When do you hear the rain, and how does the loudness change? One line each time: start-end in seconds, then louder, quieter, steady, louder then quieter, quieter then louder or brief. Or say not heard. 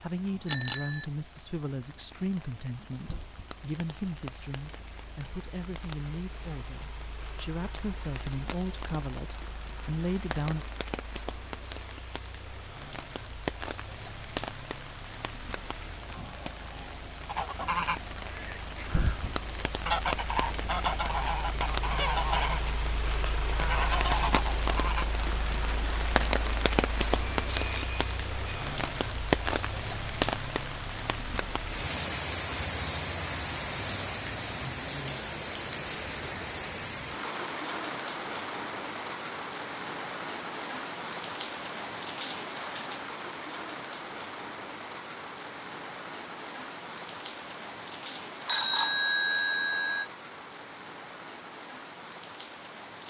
0.0-53.0 louder then quieter.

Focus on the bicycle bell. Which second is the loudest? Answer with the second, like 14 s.
1 s.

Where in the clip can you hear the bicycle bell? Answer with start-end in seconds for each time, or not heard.
0.5-1.1, 27.1-28.7, 48.5-50.0.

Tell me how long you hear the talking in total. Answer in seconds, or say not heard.
11 s.